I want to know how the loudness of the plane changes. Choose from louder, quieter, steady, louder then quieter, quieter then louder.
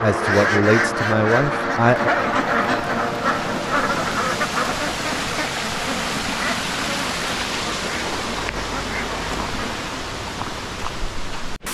steady.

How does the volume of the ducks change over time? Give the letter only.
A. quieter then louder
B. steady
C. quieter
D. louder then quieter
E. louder
C.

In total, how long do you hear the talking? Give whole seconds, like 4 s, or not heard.
2 s.